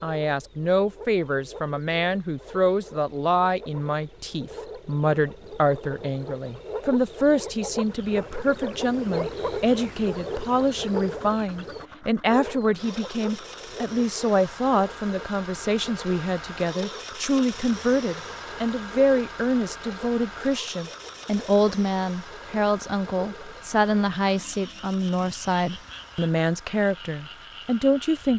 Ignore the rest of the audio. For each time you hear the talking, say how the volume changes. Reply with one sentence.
The talking can be heard from 0.0 to 28.3 s, at a steady volume.